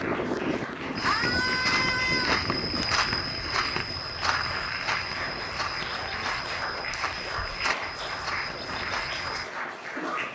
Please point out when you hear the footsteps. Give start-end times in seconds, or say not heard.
0.9-9.4.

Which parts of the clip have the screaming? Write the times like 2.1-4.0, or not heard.
1.1-2.4, 6.0-6.5.